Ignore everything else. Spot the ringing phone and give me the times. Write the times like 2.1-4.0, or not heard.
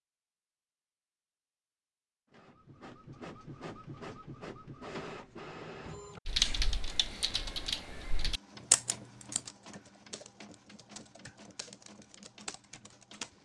not heard.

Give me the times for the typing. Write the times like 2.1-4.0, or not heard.
6.2-13.3.